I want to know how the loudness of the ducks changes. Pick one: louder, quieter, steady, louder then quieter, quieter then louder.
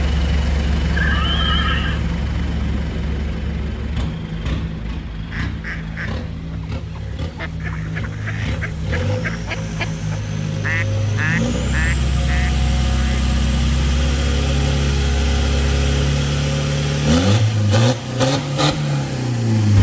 louder.